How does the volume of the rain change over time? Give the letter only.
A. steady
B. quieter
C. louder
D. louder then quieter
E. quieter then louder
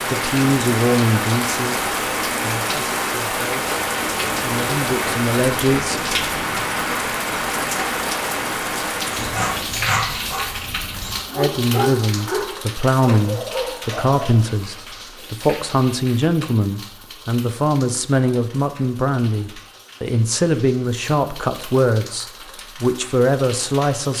B.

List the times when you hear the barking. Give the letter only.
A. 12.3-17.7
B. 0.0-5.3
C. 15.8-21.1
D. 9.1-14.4
D.